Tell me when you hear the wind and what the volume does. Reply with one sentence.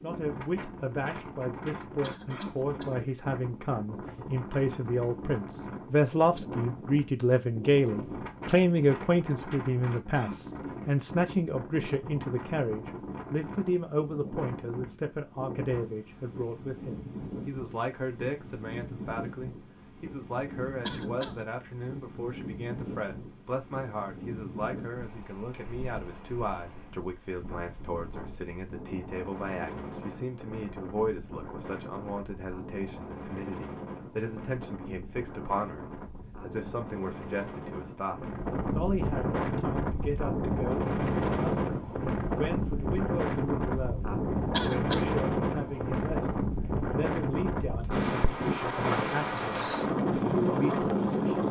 The wind can be heard from 0.0 to 51.4 s, getting louder.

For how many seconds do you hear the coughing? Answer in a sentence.
You can hear the coughing for 2 seconds altogether.